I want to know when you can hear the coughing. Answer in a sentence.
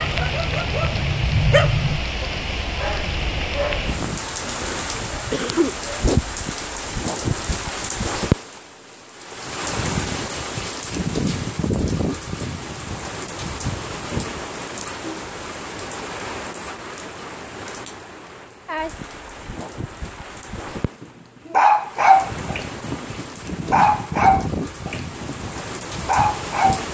The coughing can be heard from 4.5 to 5.8 s.